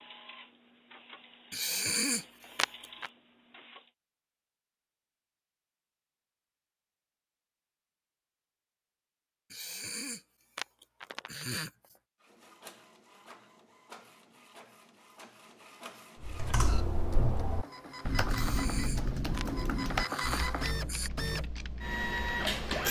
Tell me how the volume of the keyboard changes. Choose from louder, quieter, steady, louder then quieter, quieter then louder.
quieter.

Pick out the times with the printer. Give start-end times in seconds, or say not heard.
0.0-3.9, 12.2-22.8.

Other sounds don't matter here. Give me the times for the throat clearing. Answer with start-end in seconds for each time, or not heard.
1.5-3.1, 9.5-11.9, 18.3-21.1.